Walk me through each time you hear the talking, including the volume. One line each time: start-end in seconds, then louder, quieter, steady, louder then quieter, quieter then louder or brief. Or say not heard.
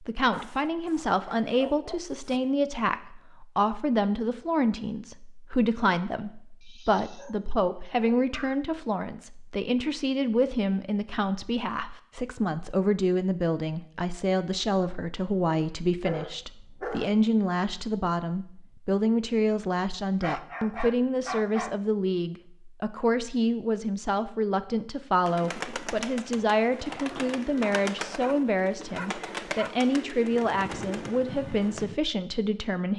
0.0-32.9 steady.